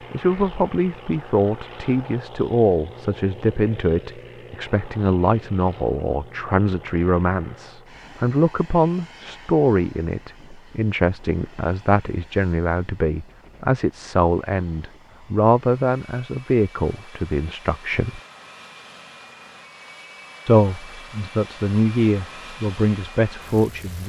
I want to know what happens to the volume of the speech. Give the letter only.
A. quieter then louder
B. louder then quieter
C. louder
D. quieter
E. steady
E.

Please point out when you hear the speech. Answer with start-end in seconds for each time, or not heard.
0.1-18.2, 20.4-24.0.